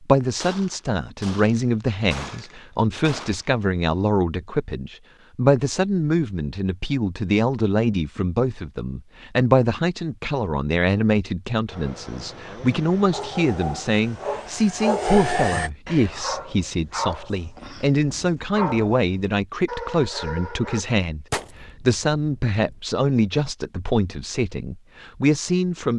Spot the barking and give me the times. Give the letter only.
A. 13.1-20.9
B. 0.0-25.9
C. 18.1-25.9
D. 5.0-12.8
A.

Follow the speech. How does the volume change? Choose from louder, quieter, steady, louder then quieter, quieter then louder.
steady.